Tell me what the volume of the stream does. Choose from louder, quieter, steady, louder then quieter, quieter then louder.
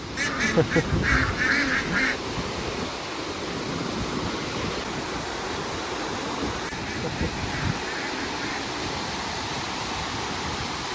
steady.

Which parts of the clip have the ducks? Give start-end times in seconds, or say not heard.
0.1-2.2, 6.7-8.7.